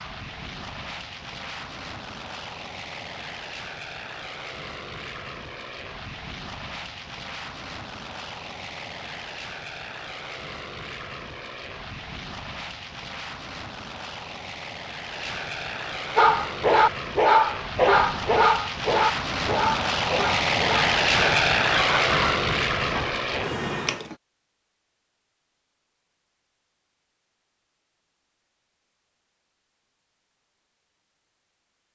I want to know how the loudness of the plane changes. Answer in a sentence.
The volume of the plane goes up.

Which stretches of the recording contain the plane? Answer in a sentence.
You can hear the plane from 0.0 to 24.1 s.